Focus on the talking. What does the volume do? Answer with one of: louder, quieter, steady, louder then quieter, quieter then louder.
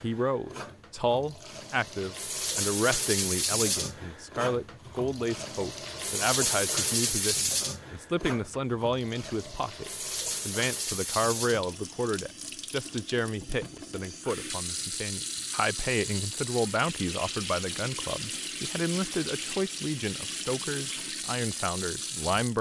steady.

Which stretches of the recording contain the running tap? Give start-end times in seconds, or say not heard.
0.0-22.5.